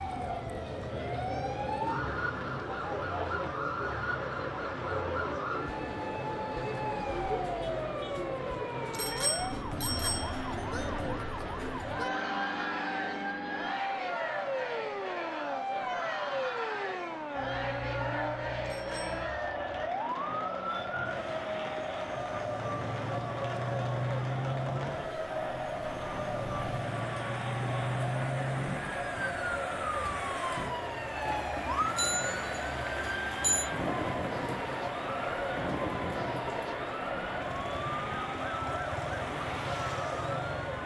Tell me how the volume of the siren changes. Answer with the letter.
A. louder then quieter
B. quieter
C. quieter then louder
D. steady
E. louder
D.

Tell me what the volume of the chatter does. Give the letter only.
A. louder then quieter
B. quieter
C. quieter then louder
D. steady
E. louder
D.